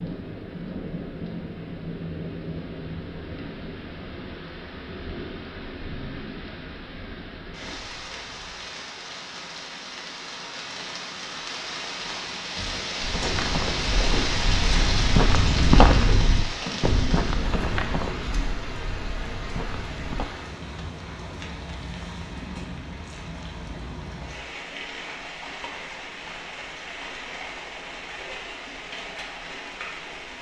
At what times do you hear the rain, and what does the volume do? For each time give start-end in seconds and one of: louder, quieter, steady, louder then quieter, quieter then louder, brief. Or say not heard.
0.0-30.3 louder then quieter.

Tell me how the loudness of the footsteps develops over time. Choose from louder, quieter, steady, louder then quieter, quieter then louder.
louder then quieter.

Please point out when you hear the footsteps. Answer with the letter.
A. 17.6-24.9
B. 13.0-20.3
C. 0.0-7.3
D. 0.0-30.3
B.